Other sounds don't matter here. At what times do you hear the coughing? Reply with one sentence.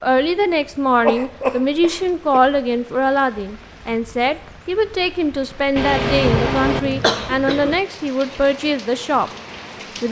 You can hear the coughing from 1.0 to 2.4 s and from 5.8 to 7.8 s.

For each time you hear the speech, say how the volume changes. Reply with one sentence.
The speech can be heard from 0.0 to 9.3 s, at a steady volume.